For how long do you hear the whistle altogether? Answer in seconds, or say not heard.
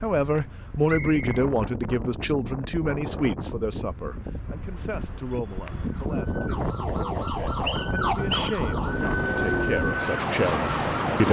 2 s.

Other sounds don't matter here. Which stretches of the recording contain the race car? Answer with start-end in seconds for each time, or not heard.
8.8-11.2.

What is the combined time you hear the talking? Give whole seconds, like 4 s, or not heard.
11 s.